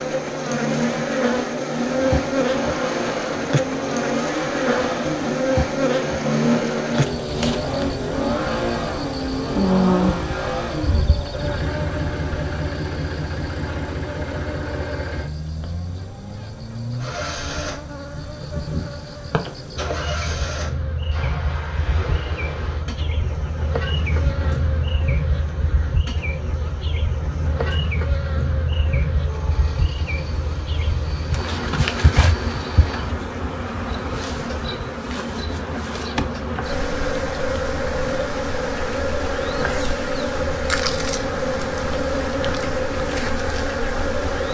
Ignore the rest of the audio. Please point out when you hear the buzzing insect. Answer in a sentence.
You can hear the buzzing insect from 0.0 to 44.5 s.